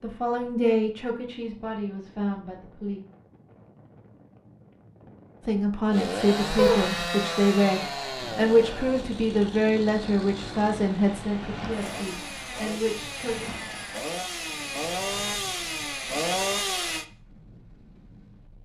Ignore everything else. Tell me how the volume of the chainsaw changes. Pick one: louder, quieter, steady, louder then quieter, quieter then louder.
quieter then louder.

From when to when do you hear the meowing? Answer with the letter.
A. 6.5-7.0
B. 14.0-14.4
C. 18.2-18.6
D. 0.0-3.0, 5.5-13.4
A.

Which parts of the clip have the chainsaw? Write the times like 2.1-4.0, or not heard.
5.9-17.1.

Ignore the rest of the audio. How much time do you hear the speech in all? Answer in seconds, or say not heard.
11 s.